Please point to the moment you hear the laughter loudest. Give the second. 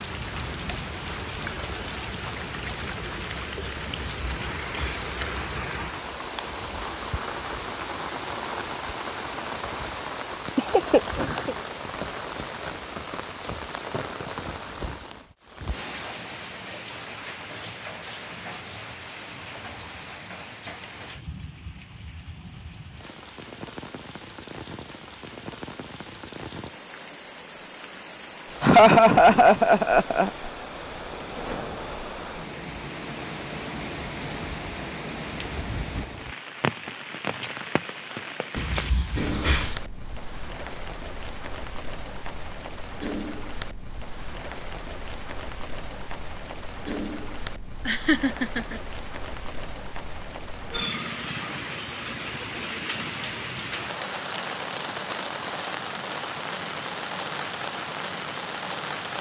29 s.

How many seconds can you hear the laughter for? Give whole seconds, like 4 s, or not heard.
4 s.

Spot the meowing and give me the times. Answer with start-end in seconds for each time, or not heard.
3.9-5.5, 38.5-39.8.